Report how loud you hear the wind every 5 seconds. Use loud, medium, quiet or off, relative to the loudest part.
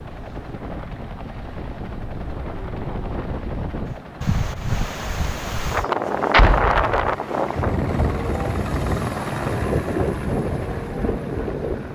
medium, loud, loud.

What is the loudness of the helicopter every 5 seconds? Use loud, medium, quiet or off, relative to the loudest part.
medium, loud, loud.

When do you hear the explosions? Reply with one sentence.
You can hear the explosions from 6.3 to 7.2 s.